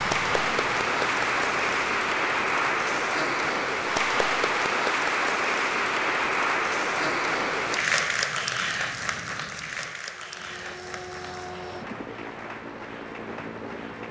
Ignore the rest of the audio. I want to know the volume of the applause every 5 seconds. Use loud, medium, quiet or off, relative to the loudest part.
loud, loud, quiet.